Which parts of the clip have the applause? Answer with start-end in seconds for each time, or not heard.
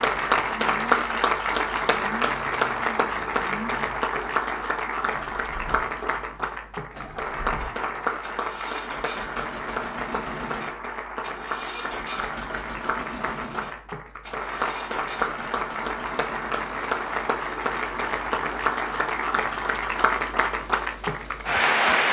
0.0-22.0.